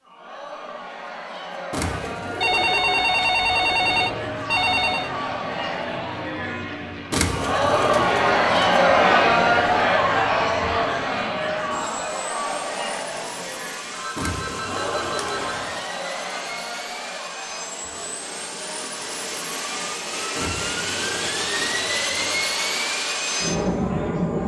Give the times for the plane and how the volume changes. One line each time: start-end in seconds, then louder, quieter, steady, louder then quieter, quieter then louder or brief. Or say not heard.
3.8-24.4 louder.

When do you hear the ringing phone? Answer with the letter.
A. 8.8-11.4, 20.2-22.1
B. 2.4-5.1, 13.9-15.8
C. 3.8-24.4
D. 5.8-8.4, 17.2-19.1
B.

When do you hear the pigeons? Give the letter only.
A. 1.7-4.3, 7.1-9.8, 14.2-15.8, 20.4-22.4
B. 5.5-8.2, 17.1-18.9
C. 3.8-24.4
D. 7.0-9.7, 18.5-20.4
A.